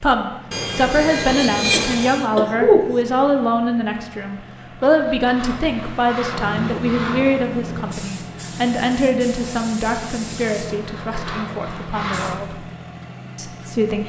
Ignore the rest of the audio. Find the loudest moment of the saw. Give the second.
2 s.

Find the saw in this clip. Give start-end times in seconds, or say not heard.
0.5-2.2, 4.8-7.5, 10.8-12.4.